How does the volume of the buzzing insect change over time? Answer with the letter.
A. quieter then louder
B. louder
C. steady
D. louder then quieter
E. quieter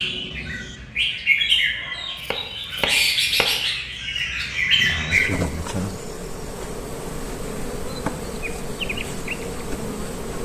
C.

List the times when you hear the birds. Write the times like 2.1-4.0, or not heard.
0.0-5.3.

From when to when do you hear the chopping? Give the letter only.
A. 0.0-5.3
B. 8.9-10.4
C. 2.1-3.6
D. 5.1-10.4
C.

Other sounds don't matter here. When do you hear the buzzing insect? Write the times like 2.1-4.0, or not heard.
5.1-10.4.